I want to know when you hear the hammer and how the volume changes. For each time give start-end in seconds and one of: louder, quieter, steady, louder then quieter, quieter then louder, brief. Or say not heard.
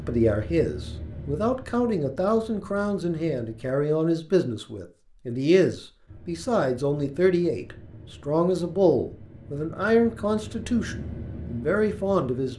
not heard.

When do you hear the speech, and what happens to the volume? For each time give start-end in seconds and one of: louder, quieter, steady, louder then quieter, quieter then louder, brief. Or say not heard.
0.0-12.5 steady.